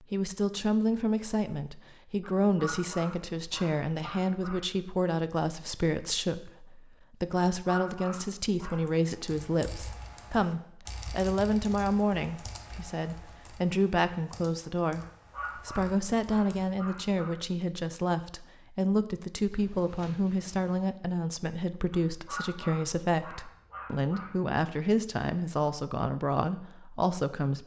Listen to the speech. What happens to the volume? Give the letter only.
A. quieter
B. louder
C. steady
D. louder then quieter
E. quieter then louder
C.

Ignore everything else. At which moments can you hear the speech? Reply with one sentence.
You can hear the speech from 0.0 to 27.6 s.